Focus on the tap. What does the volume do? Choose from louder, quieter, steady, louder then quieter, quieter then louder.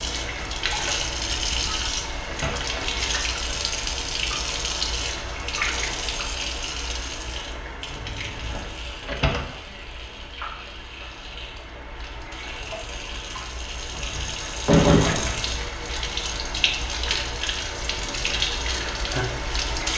quieter then louder.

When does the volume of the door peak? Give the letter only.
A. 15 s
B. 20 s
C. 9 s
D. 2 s
A.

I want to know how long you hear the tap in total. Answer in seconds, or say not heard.
20 s.